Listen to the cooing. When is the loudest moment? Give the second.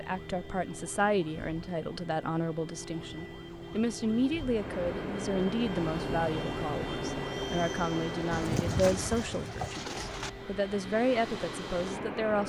9 s.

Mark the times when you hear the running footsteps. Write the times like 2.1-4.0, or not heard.
not heard.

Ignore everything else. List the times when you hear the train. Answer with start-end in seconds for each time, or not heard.
4.5-12.4.